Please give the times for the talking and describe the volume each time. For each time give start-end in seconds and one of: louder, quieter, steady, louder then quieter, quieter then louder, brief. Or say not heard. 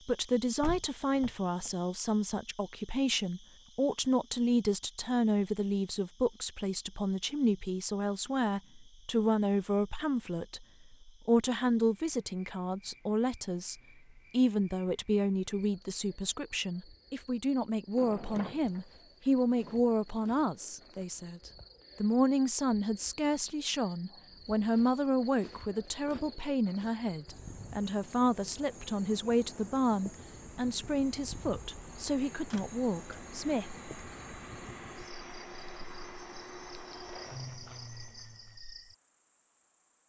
0.1-33.8 steady.